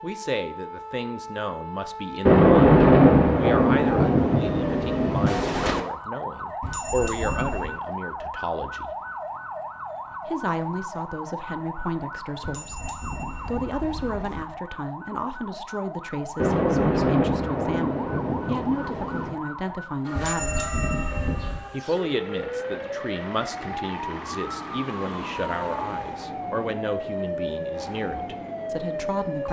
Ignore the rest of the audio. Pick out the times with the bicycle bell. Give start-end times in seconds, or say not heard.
6.6-7.8, 12.4-14.4, 20.1-21.6.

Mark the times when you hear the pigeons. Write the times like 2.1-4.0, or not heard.
not heard.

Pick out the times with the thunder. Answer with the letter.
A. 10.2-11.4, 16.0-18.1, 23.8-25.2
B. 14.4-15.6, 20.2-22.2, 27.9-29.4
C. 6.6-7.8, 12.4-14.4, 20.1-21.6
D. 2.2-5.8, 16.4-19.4
D.